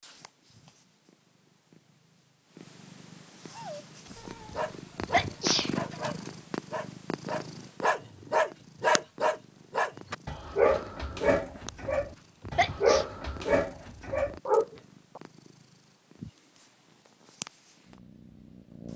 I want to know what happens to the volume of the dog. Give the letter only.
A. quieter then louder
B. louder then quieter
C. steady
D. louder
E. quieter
D.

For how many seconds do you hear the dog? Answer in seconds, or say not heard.
12 s.